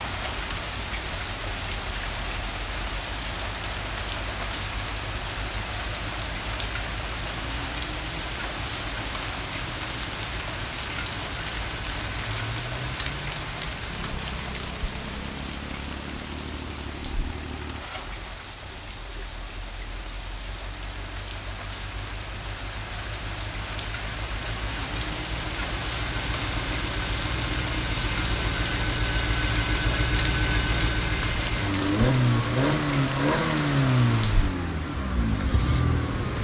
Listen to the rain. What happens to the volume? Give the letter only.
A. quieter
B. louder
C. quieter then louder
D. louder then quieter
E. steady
C.